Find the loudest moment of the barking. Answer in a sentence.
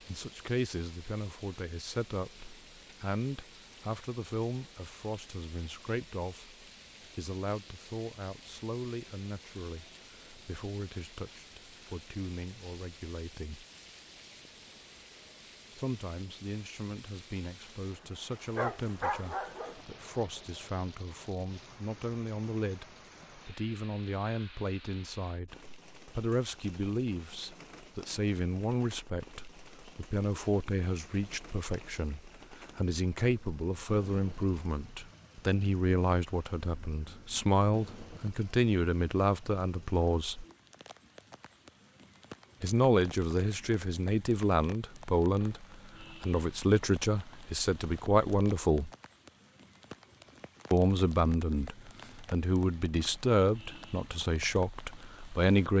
The volume of the barking peaks at 19 seconds.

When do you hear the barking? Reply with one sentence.
You can hear the barking from 18.6 to 20.3 s.